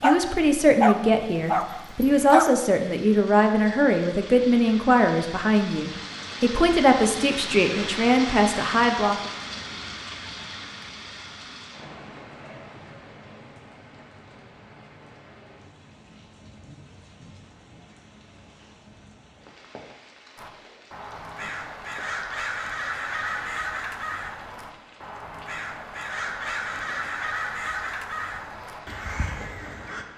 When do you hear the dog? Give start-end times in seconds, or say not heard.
0.0-2.5.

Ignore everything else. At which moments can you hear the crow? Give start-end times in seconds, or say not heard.
20.4-30.1.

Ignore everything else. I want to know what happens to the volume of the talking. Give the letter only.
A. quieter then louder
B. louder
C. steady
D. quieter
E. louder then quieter
C.